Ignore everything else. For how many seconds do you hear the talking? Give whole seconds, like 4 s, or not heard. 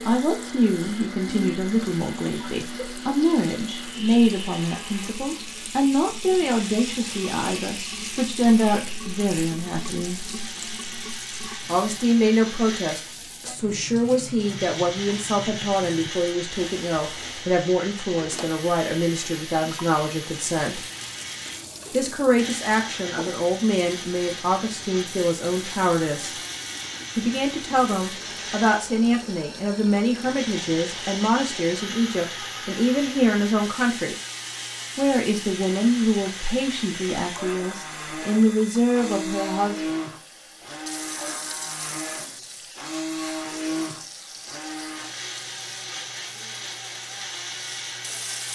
36 s.